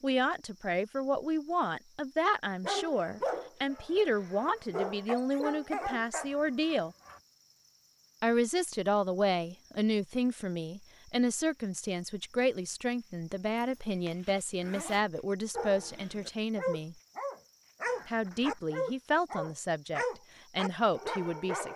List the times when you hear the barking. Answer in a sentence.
You can hear the barking from 2.6 to 7.2 s and from 15.5 to 21.7 s.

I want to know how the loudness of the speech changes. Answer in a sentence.
The volume of the speech stays about the same.